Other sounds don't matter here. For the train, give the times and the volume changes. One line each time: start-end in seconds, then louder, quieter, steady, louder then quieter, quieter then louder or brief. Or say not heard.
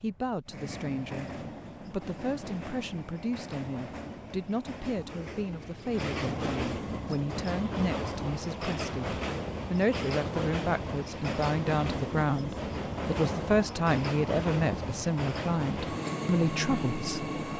0.0-17.5 louder.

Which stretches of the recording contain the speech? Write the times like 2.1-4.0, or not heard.
0.0-17.3.